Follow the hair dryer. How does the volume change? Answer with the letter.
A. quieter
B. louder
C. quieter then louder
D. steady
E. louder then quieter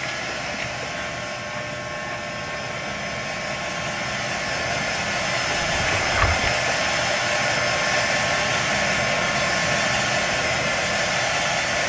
B.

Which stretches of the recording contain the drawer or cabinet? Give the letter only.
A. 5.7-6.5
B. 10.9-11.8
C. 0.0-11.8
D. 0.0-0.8
A.